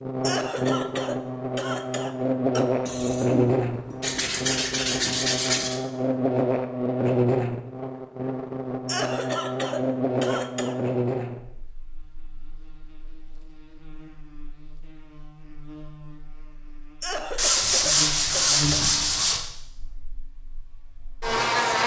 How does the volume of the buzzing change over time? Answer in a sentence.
The volume of the buzzing goes down, then up.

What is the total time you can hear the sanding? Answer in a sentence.
You can hear the sanding for 5 seconds altogether.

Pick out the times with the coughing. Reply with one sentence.
You can hear the coughing from 0.2 to 2.6 s, from 8.8 to 10.8 s and from 17.0 to 19.4 s.